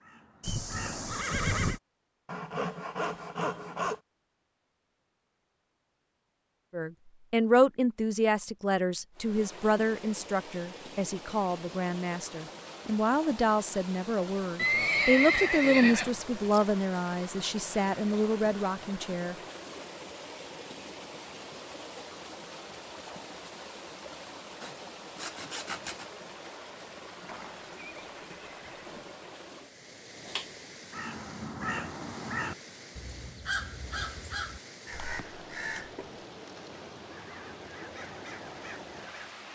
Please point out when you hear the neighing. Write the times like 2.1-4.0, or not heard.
0.4-1.8, 14.6-16.6, 27.2-29.1.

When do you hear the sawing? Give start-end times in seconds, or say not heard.
2.2-4.0, 24.5-26.1.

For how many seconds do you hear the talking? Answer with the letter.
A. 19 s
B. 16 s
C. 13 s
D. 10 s
C.